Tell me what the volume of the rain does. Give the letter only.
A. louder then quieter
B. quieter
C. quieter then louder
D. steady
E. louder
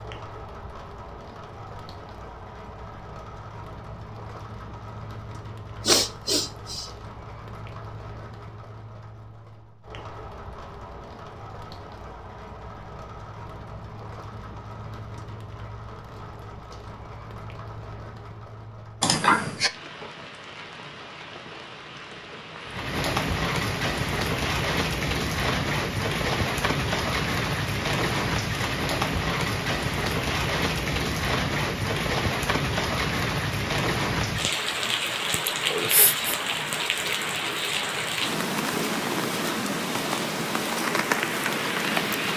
E.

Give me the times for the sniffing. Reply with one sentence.
You can hear the sniffing from 5.8 to 6.9 s, from 19.0 to 19.7 s and from 35.5 to 36.3 s.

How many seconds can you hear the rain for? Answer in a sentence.
You can hear the rain for 42 seconds altogether.